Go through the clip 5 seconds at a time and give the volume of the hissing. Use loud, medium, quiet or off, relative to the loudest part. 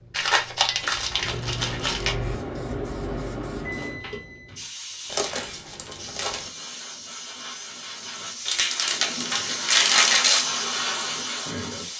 medium, medium, loud.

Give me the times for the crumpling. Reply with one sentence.
The crumpling can be heard from 0.1 to 2.1 s, from 5.1 to 6.5 s and from 8.4 to 10.4 s.